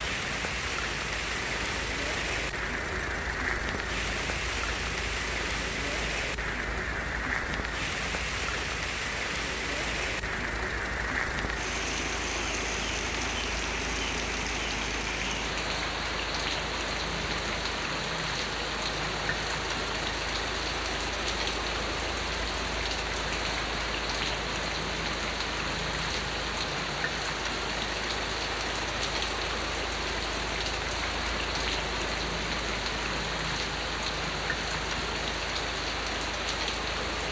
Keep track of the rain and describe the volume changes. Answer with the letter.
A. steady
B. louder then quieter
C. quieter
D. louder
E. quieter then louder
A.